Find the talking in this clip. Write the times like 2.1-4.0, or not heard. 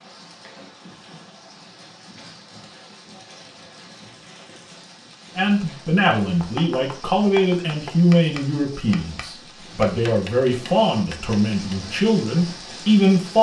5.3-13.3.